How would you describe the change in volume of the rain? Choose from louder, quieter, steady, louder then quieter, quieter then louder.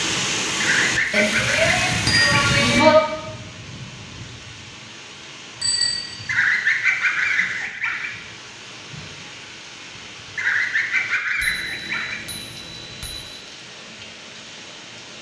quieter.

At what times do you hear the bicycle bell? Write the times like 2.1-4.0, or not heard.
1.1-3.0, 5.6-6.1, 11.4-13.3.